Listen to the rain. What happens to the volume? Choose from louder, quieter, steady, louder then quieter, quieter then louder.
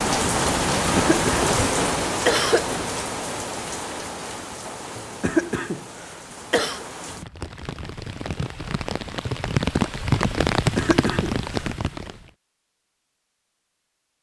quieter then louder.